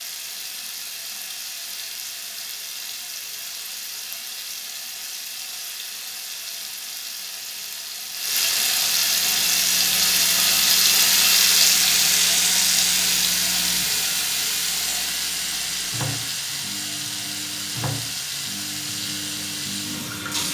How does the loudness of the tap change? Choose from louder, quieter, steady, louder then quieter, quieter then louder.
louder then quieter.